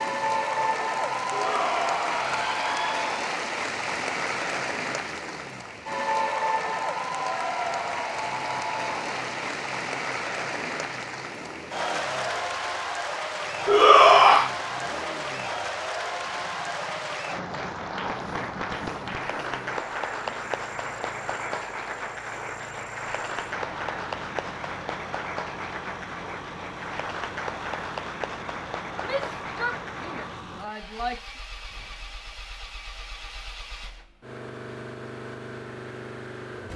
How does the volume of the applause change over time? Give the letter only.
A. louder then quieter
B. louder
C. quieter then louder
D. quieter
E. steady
D.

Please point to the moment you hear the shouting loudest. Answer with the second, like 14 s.
14 s.